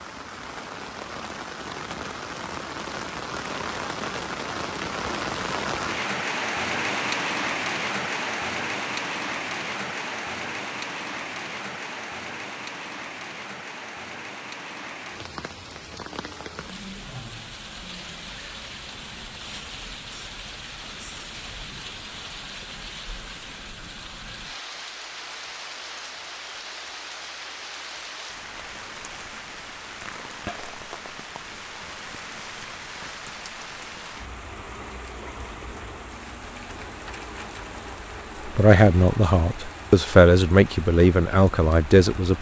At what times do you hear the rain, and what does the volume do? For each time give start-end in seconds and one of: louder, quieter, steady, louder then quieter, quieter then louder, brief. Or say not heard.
0.0-42.3 quieter.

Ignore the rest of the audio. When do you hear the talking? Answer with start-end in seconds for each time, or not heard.
38.5-42.3.